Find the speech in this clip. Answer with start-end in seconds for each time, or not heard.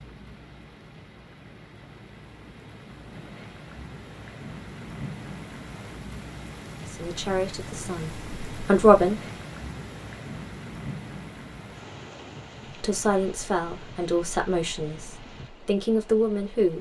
6.8-9.2, 12.8-16.7.